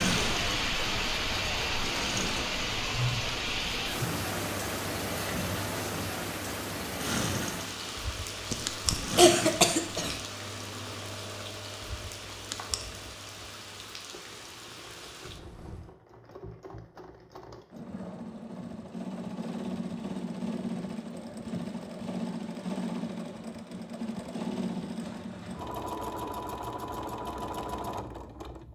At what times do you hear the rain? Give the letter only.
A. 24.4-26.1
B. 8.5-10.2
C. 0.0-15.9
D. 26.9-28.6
C.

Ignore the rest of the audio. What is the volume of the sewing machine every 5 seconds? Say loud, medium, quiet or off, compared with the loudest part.
loud, loud, quiet, medium, loud, loud.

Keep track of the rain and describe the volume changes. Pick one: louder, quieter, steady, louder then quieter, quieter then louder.
quieter.